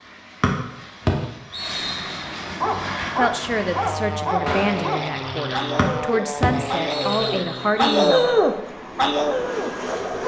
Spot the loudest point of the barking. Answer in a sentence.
The loudest moment of the barking is at 8 seconds.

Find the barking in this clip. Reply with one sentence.
You can hear the barking from 2.6 to 10.2 s.